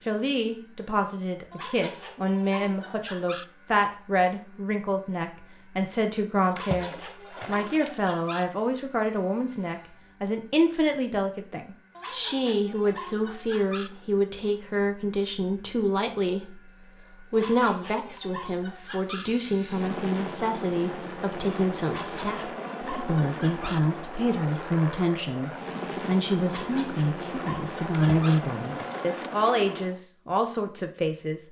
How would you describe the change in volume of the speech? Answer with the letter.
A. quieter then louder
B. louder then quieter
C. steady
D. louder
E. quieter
C.